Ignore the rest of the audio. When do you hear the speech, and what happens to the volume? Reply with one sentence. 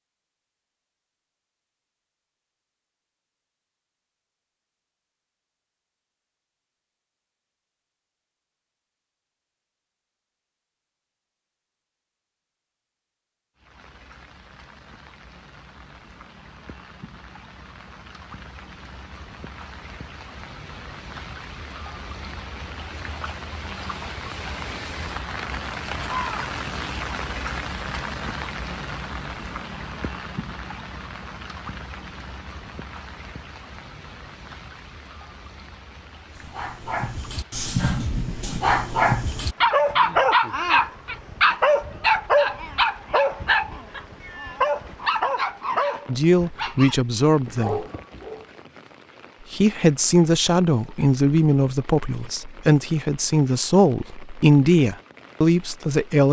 The speech can be heard briefly from 46.0 to 47.9 s; and from 49.5 to 56.2 s, at a steady volume.